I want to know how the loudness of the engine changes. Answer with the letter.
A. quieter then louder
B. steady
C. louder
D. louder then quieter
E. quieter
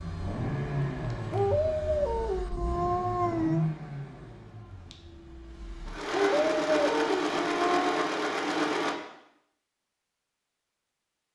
A.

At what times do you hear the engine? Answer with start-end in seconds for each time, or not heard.
0.0-8.9.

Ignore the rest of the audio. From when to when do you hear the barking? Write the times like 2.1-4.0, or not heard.
1.3-3.6, 6.1-8.1.